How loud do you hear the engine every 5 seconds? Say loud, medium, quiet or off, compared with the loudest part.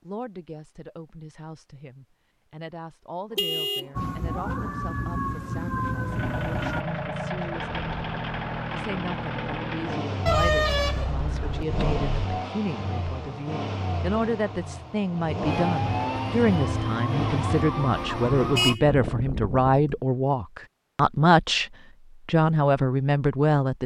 off, loud, loud, loud, off.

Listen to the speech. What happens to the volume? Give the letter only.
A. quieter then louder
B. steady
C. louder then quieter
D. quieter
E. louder
E.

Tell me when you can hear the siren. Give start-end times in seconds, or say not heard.
3.9-6.8, 15.4-18.8.